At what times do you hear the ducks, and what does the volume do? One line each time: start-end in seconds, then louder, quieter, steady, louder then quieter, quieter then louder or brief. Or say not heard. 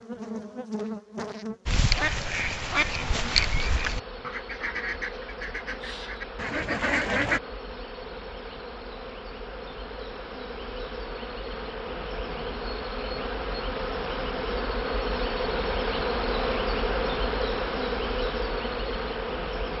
1.6-7.4 quieter then louder.